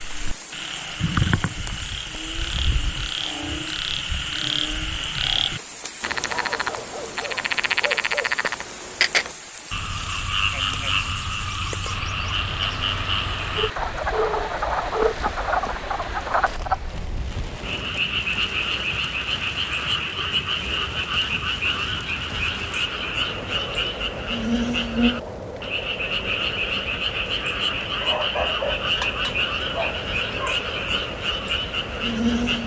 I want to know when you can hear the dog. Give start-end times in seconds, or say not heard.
6.5-8.4, 13.6-15.2, 28.0-30.6.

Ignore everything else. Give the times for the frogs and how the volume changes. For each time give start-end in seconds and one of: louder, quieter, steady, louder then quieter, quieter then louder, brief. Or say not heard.
0.0-32.6 steady.